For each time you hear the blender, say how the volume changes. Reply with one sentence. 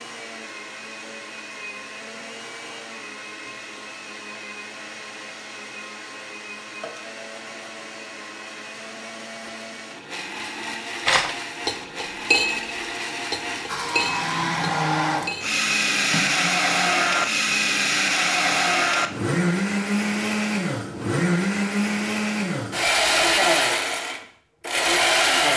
The blender can be heard from 0.0 to 25.5 s, getting louder.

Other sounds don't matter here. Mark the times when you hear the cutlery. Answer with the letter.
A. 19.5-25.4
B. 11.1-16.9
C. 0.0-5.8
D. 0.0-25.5
B.